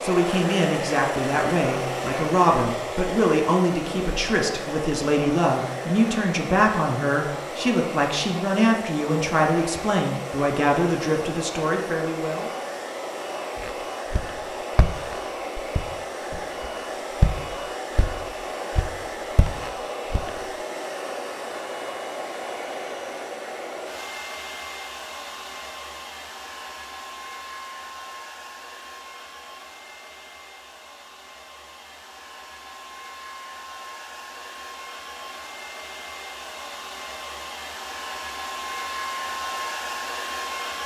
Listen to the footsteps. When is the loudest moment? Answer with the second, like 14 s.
17 s.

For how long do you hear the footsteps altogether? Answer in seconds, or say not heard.
7 s.